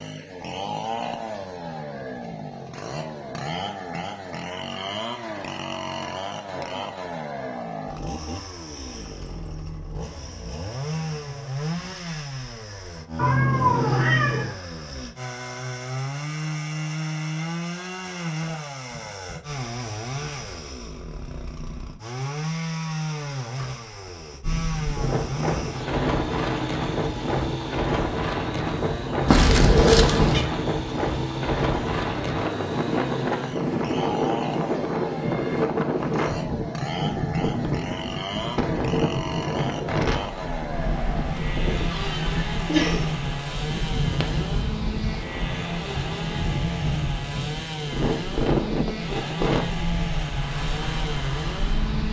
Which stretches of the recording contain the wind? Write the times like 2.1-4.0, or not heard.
24.4-52.0.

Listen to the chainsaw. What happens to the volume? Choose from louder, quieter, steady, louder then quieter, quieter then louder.
steady.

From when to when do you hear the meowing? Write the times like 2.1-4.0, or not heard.
13.2-14.5, 29.2-30.4, 41.8-43.1.